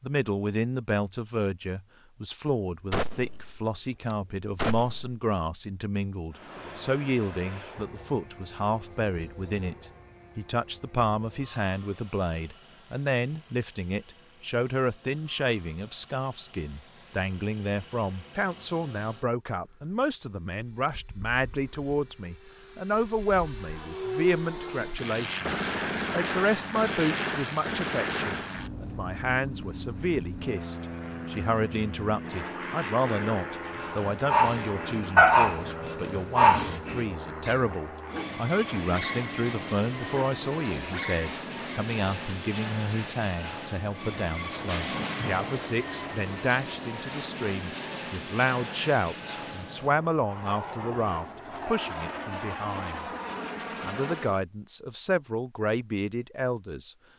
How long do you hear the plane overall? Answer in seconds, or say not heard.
48 s.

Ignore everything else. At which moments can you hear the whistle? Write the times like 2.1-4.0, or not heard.
not heard.